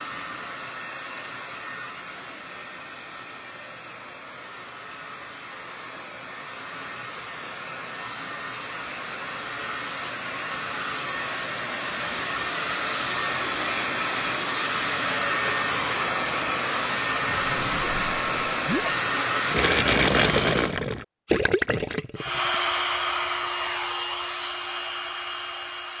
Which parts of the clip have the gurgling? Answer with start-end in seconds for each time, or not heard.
17.1-22.6.